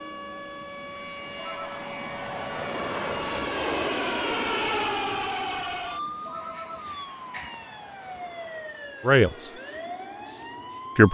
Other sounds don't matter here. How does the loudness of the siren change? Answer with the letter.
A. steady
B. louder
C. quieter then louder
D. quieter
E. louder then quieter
E.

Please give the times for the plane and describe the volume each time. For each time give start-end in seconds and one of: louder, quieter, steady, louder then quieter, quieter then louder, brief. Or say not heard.
0.0-11.0 louder then quieter.